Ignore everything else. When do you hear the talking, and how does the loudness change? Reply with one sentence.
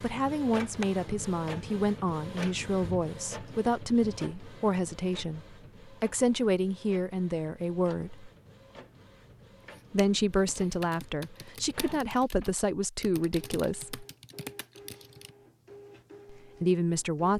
You can hear the talking from 0.0 to 8.3 s, at a steady volume; from 9.9 to 14.1 s, getting quieter then louder; and briefly from 16.3 to 17.3 s.